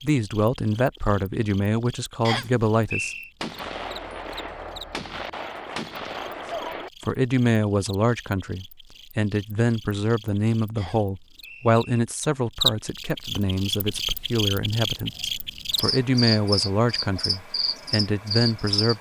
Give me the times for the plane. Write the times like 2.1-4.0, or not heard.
not heard.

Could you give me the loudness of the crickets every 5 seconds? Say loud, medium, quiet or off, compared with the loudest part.
quiet, quiet, loud, loud.